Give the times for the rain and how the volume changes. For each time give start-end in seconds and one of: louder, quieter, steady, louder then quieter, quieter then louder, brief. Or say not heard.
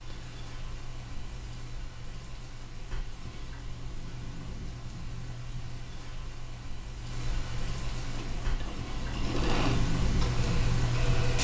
0.0-11.3 louder.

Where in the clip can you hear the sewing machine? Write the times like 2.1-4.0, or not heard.
8.1-11.3.